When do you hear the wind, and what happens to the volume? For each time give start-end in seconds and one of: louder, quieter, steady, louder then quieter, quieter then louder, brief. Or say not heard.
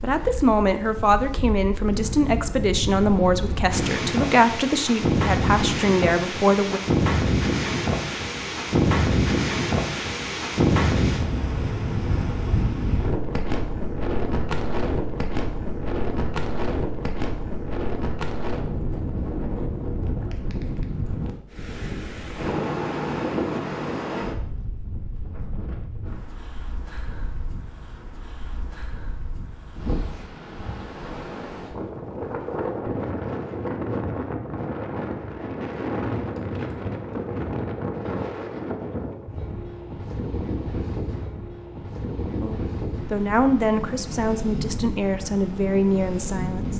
0.0-46.7 quieter.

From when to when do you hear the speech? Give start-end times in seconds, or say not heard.
0.0-6.8, 42.4-46.7.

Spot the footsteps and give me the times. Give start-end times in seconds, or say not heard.
not heard.